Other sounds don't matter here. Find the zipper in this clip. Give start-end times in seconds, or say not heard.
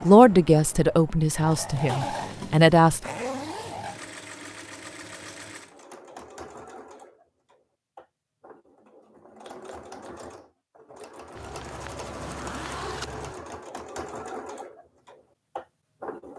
1.9-4.0, 11.3-13.3.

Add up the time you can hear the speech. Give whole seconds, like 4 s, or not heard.
3 s.